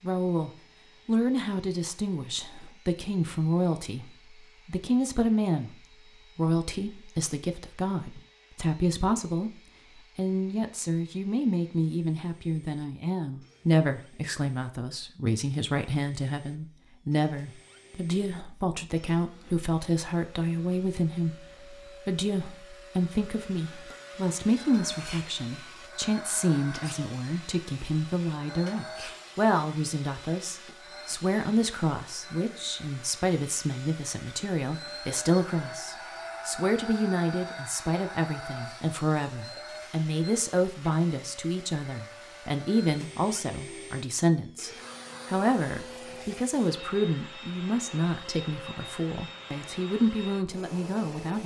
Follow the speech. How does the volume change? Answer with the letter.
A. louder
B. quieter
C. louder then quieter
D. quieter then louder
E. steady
E.